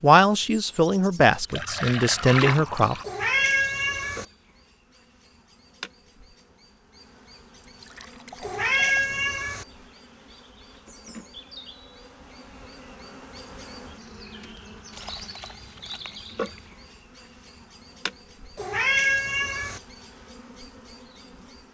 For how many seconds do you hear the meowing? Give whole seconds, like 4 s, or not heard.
4 s.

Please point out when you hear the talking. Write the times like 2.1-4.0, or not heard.
0.0-3.0.